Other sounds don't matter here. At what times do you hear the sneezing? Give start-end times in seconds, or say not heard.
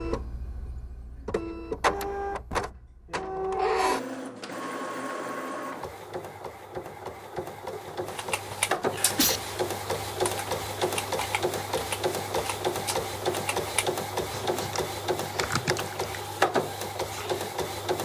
8.5-9.4.